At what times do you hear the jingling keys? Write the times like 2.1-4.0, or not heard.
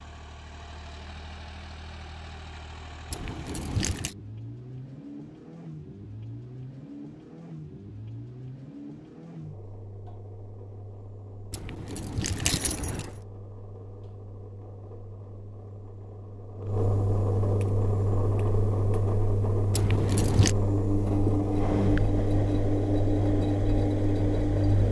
3.1-4.2, 11.5-13.2, 19.7-20.6.